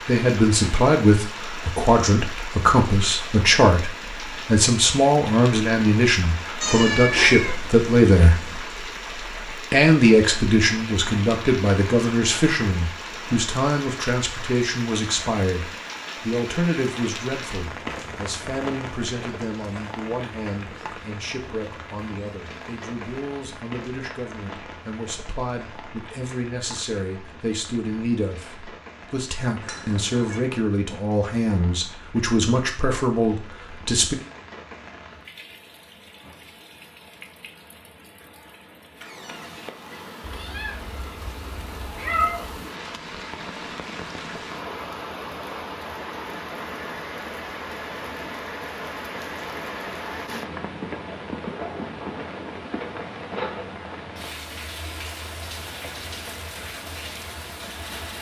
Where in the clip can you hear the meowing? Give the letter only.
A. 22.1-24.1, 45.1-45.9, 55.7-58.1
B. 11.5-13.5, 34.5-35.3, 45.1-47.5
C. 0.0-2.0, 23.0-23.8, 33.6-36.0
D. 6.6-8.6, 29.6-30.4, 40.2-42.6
D.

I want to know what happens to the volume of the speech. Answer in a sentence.
The volume of the speech goes down, then up.